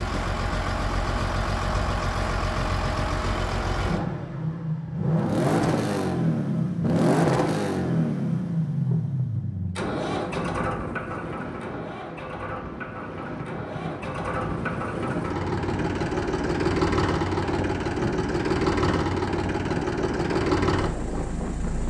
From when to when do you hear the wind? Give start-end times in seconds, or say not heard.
9.9-21.8.